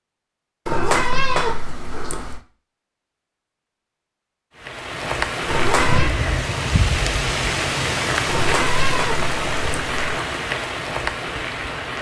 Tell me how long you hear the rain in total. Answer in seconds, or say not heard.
7 s.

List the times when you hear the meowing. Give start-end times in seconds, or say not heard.
0.7-2.4, 5.5-6.2, 8.2-10.2.